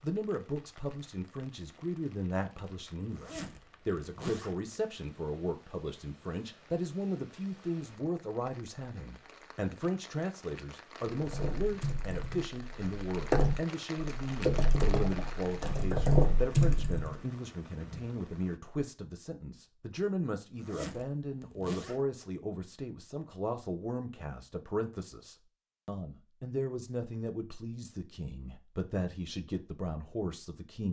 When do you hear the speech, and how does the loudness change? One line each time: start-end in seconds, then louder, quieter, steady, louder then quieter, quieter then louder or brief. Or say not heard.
0.0-30.8 steady.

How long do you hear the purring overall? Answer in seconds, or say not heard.
not heard.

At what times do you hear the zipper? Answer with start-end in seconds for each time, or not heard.
3.0-4.7, 20.5-22.1.